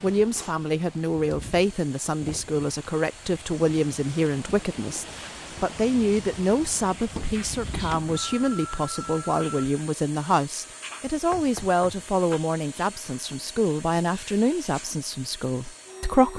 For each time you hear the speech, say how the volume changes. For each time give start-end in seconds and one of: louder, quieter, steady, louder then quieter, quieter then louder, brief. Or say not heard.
0.0-16.3 steady.